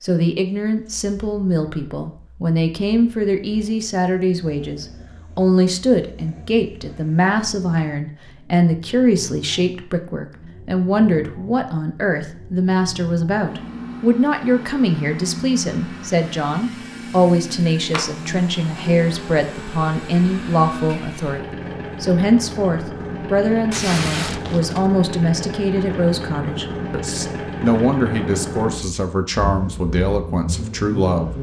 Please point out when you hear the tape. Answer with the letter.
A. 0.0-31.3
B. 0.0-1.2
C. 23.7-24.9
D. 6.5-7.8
C.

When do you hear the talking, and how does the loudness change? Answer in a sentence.
The talking can be heard from 0.0 to 31.3 s, at a steady volume.